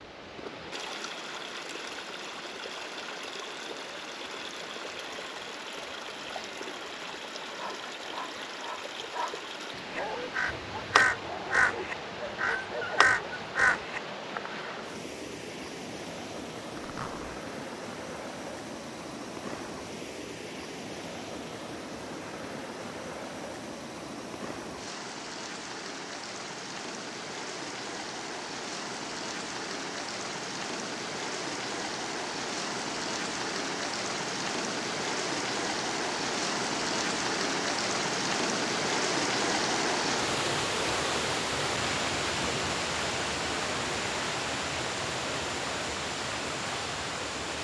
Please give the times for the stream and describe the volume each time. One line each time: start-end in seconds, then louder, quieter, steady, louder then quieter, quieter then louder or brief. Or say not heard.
0.0-47.5 louder.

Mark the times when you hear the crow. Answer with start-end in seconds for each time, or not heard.
9.9-14.8.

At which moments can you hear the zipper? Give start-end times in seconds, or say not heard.
16.8-17.4.